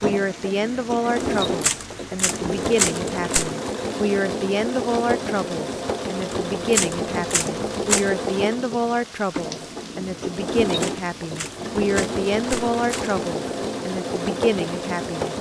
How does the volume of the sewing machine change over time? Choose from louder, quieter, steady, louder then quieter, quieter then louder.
steady.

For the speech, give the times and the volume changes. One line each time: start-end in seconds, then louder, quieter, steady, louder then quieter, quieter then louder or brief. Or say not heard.
0.0-15.3 steady.